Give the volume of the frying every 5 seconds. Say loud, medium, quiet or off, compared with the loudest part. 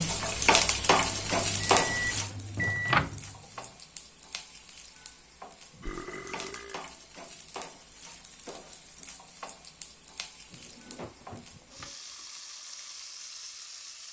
loud, quiet, quiet.